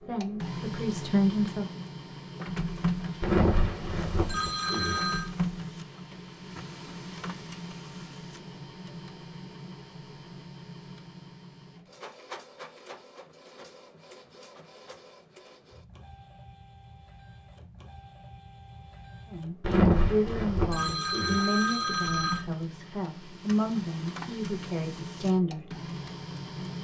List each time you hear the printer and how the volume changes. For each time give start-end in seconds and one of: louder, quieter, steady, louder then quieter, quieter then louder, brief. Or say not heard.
0.0-26.8 quieter then louder.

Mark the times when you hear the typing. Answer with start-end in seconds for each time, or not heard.
not heard.